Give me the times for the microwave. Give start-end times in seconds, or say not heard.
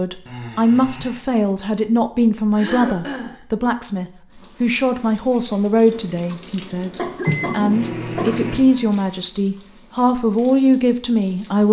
6.1-8.7.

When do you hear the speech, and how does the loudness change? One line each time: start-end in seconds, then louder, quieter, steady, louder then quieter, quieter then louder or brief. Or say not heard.
0.0-11.6 steady.